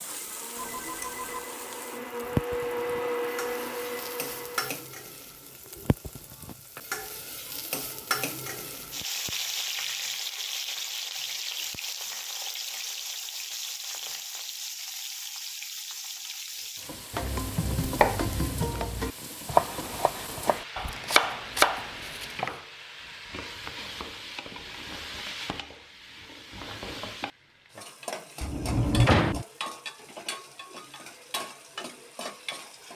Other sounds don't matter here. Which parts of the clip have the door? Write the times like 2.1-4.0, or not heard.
28.4-29.4.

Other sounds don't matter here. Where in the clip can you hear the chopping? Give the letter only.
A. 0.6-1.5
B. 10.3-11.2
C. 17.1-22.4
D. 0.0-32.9
C.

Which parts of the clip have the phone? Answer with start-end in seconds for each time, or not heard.
0.6-1.5.